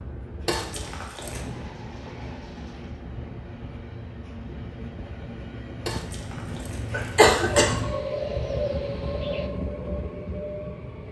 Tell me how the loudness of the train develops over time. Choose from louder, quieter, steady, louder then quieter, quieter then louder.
louder.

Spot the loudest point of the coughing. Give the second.
7 s.